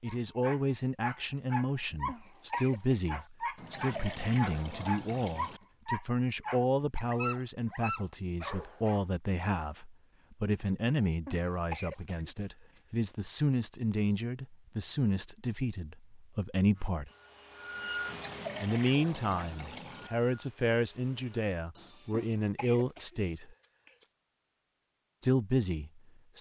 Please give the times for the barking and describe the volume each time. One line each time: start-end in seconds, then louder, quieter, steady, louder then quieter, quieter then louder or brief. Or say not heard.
0.1-9.1 steady.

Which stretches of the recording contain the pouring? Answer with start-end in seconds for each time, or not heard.
3.5-5.6, 18.1-20.1.